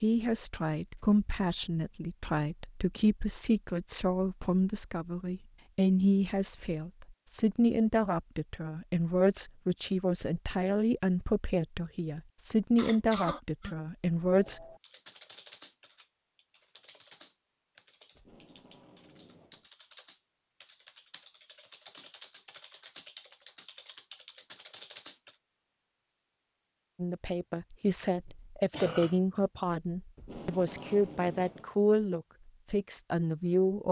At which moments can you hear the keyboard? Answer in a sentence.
You can hear the keyboard from 14.8 to 25.4 s.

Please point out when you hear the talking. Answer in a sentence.
You can hear the talking from 0.0 to 14.6 s and from 26.9 to 33.8 s.